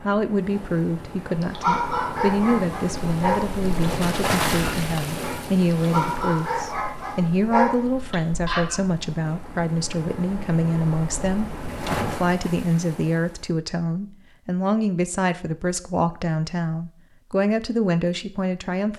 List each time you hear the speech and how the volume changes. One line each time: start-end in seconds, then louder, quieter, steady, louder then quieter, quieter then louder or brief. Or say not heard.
0.0-18.9 steady.